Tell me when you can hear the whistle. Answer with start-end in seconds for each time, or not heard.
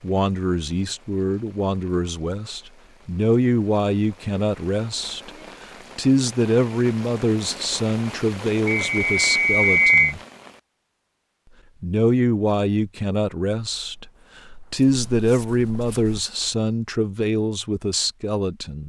8.7-10.2.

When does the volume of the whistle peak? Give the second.
10 s.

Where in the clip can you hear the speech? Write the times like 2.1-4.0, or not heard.
0.0-5.3, 6.0-10.2, 11.8-14.1, 14.7-18.8.